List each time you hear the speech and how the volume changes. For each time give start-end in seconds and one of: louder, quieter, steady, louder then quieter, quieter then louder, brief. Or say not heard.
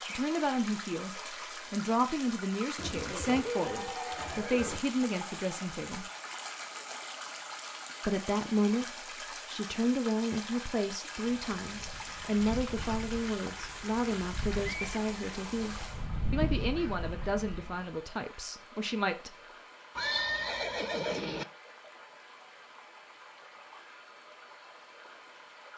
0.0-6.1 steady
8.1-19.4 quieter.